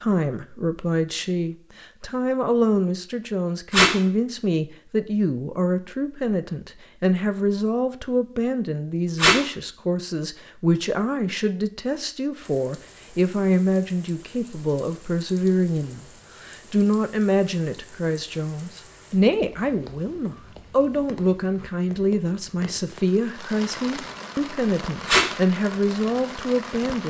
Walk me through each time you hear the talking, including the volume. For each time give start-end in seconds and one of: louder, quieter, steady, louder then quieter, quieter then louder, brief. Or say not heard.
0.0-27.0 steady.